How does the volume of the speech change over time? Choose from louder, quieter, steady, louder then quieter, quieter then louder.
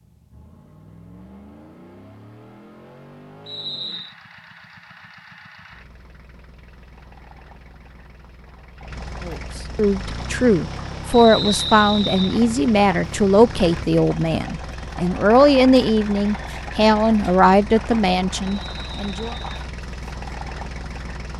steady.